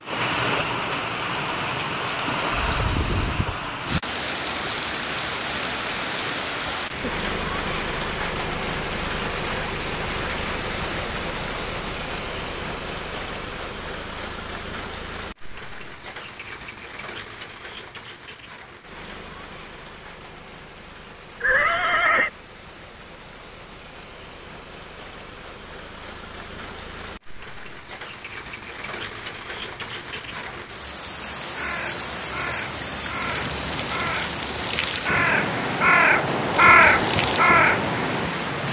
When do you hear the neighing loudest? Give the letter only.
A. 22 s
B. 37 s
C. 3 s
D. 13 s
A.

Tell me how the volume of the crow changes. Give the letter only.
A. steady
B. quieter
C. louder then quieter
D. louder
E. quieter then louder
D.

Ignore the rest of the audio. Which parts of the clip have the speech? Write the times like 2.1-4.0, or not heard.
not heard.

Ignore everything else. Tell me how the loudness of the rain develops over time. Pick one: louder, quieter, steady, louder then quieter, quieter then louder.
quieter then louder.